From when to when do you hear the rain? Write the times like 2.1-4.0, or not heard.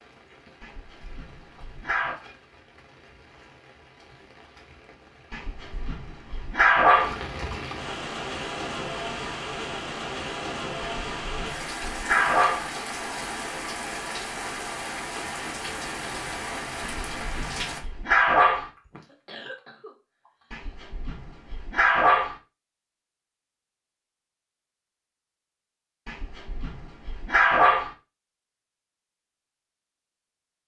0.0-17.8.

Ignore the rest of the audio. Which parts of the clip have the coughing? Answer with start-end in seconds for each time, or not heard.
18.8-20.6.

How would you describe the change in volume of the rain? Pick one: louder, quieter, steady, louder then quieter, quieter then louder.
louder.